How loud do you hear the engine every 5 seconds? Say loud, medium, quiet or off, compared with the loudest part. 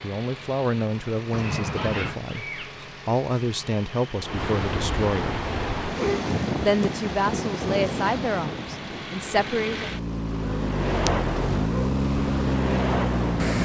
quiet, medium, loud.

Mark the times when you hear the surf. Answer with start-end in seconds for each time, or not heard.
4.2-13.6.